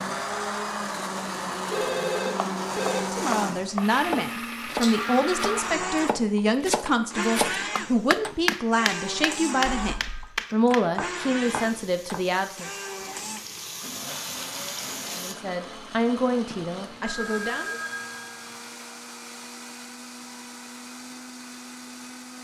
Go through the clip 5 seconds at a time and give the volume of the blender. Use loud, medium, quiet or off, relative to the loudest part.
loud, loud, medium, medium, medium.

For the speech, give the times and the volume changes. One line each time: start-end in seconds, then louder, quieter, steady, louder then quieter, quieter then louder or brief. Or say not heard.
3.0-12.7 steady
15.1-17.8 brief.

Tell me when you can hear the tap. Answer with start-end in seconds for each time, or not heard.
11.6-15.3.